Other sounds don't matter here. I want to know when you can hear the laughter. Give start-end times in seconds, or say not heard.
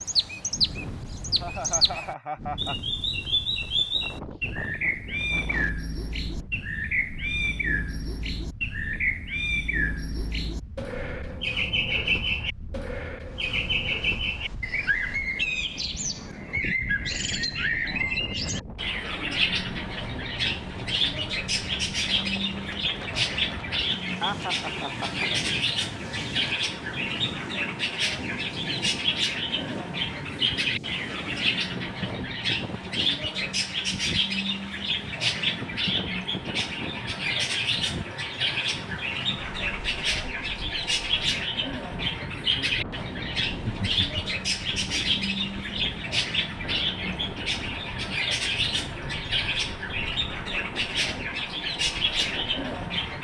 1.4-2.8, 24.2-25.3, 43.5-44.2.